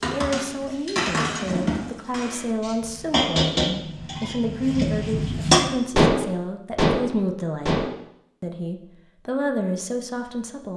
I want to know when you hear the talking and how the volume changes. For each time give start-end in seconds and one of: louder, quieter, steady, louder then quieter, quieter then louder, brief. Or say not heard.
0.0-10.7 steady.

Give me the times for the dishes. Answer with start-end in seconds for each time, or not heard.
0.0-7.9.